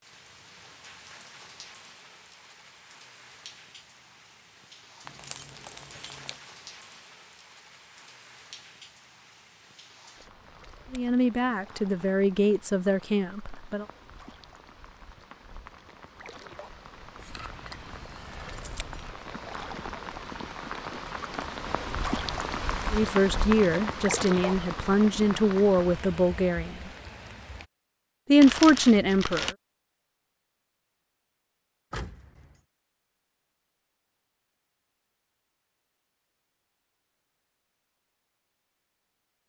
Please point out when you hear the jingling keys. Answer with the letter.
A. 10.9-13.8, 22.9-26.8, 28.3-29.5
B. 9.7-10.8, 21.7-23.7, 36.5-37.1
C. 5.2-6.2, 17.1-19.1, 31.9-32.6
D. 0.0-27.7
C.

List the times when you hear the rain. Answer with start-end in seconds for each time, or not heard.
0.0-27.7.